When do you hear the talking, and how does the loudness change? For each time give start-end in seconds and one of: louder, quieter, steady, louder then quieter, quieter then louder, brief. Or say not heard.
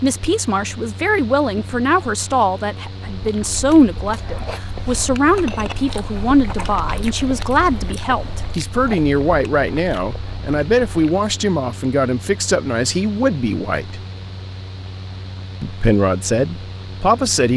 0.0-14.0 steady
15.6-17.5 brief.